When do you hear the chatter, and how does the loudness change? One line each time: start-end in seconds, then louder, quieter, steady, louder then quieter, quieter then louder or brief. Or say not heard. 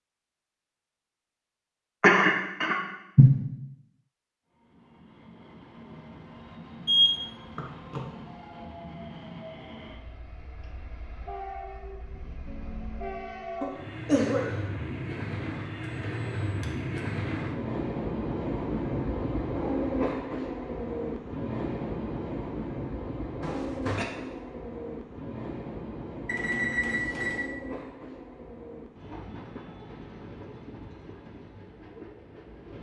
not heard.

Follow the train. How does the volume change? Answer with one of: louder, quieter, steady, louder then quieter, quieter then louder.
louder then quieter.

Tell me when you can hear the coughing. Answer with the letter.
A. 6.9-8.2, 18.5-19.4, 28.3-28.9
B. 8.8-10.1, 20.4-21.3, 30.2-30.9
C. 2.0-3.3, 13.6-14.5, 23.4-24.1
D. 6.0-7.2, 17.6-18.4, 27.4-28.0
C.